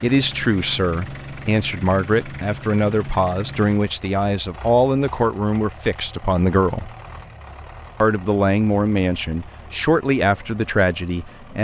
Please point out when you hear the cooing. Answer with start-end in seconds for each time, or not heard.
not heard.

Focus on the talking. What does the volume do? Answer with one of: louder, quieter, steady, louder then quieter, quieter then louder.
steady.